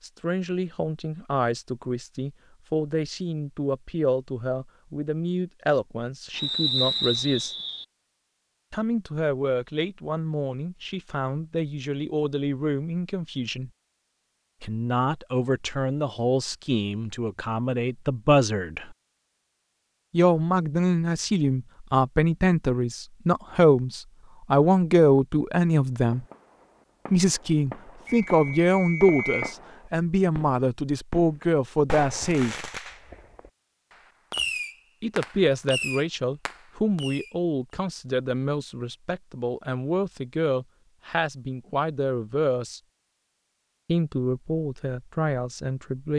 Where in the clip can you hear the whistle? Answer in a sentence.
You can hear the whistle from 6.3 to 7.8 s and from 28.1 to 29.6 s.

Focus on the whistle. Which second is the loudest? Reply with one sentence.
The volume of the whistle peaks at 7 seconds.